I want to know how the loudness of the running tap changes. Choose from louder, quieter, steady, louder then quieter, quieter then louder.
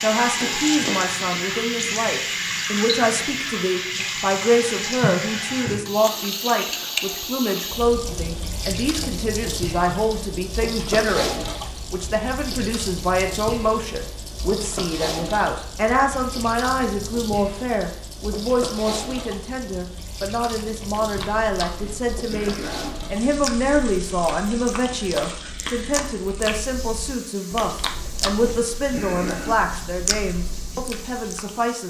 quieter.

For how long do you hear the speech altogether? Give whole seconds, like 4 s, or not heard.
32 s.